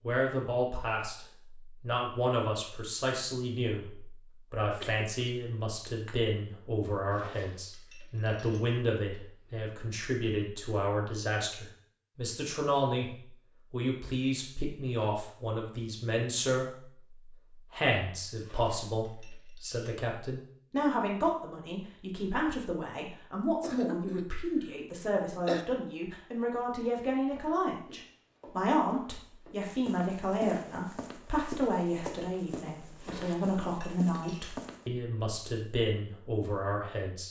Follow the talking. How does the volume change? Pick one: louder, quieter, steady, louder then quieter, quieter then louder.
steady.